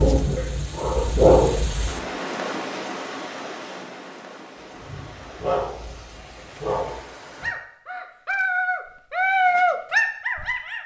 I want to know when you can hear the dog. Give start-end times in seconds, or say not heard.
0.0-1.9, 4.6-10.8.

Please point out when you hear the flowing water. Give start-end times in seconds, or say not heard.
0.0-7.5.